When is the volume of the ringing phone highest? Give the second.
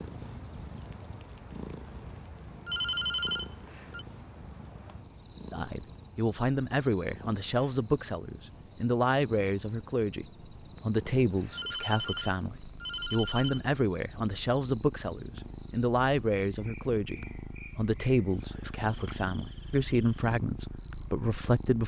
3 s.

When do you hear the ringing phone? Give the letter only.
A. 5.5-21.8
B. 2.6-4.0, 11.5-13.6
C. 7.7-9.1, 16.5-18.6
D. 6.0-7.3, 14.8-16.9
B.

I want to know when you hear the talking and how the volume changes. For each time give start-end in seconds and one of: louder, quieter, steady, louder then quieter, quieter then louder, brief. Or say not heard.
5.5-21.8 steady.